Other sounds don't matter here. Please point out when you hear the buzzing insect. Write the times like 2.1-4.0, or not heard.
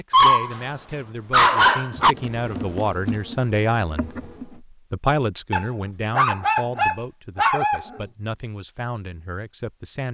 1.9-4.6.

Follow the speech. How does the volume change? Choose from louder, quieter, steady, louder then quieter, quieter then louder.
louder then quieter.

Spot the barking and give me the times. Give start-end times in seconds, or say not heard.
0.1-2.1, 5.5-7.8.